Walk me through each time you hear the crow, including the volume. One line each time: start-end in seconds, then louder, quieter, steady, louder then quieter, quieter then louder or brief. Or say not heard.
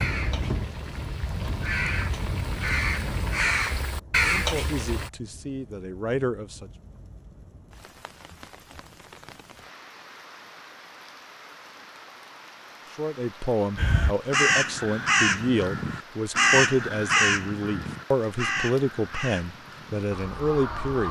0.0-5.1 louder
13.8-21.0 quieter.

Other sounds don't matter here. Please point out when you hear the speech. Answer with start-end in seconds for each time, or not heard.
4.2-6.7, 12.9-21.0.